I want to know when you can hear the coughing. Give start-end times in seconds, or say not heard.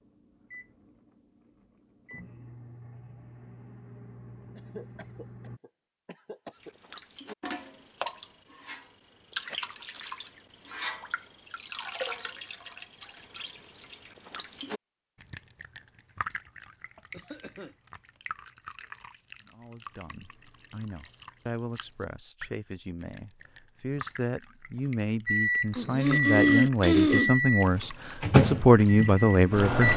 4.5-6.7, 17.1-17.8, 25.7-27.3.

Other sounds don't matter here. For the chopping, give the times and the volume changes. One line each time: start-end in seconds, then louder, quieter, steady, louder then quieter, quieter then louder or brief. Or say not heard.
not heard.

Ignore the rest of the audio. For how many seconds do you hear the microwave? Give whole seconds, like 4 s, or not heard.
10 s.